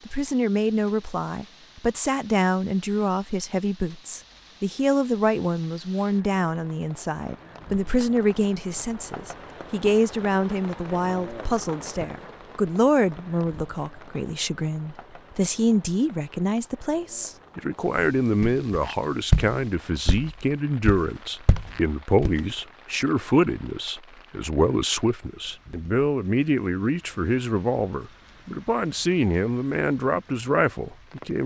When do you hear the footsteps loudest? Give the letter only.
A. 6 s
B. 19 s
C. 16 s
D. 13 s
B.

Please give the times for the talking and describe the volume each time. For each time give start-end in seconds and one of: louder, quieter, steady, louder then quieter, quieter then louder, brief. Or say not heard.
0.1-31.4 steady.